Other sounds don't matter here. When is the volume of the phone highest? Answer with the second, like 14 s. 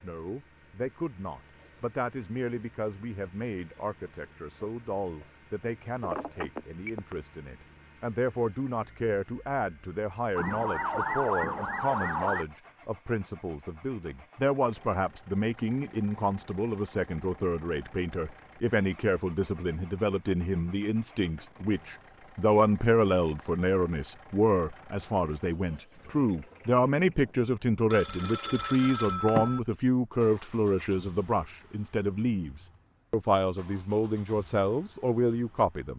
29 s.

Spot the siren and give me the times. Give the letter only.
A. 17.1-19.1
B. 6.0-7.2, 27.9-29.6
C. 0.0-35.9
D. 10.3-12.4
D.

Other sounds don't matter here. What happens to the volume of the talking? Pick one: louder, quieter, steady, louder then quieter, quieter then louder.
louder.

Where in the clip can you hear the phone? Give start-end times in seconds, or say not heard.
6.0-7.2, 27.9-29.6.